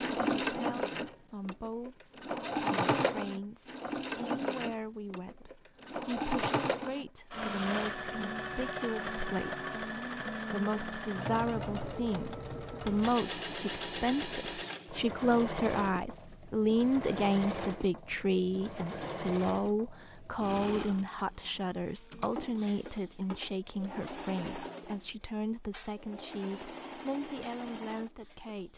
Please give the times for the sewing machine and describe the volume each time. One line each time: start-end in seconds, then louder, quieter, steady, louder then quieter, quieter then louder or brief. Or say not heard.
0.0-28.7 quieter.